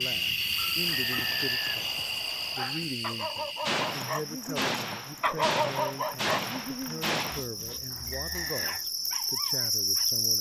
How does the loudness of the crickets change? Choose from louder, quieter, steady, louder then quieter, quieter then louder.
quieter then louder.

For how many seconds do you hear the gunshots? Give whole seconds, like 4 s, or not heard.
4 s.